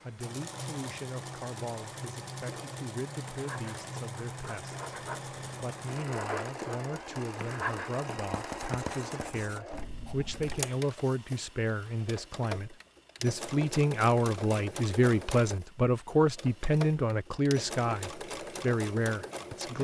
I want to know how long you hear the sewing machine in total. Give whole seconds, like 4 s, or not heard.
20 s.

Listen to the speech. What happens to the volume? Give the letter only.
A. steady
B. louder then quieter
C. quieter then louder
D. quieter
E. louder
E.